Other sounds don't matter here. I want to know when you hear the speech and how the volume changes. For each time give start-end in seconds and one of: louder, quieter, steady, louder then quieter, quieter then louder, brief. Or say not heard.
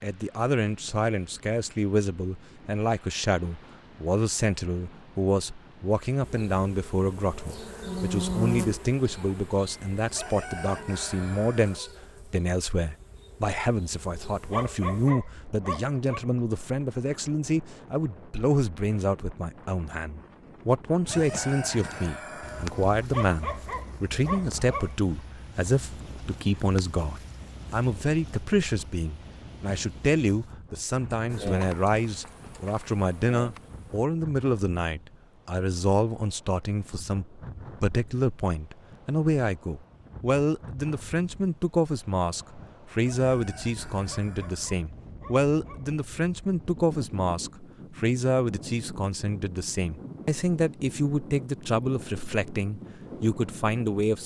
0.0-54.2 steady.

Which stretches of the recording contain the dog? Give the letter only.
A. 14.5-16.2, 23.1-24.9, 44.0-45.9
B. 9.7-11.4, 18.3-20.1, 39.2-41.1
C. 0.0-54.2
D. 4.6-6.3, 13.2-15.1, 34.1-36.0
A.